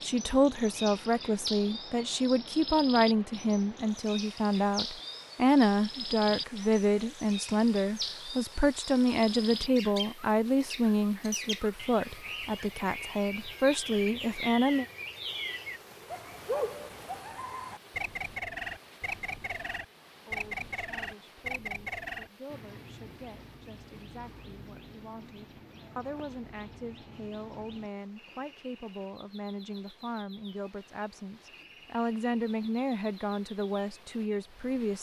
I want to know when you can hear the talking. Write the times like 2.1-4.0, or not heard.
0.0-14.8, 20.2-34.9.